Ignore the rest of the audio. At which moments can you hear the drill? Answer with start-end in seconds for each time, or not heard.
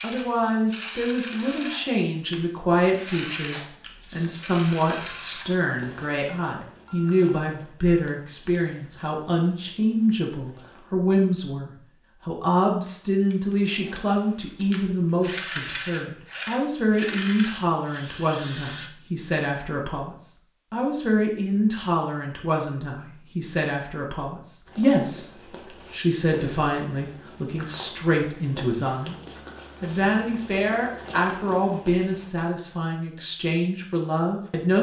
0.0-5.5, 13.3-18.9.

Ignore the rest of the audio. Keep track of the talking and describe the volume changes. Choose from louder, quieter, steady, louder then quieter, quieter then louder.
steady.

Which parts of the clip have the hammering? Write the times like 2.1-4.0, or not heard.
not heard.